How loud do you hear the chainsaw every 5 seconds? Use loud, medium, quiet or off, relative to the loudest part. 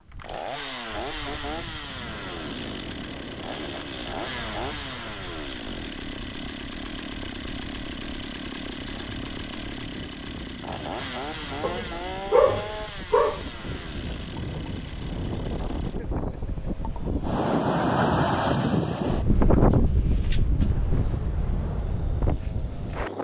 loud, loud, loud, quiet, quiet.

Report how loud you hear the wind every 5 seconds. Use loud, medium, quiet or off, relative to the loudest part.
quiet, quiet, quiet, loud, medium.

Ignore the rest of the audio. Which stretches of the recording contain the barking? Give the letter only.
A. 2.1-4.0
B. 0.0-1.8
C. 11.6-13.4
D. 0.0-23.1
C.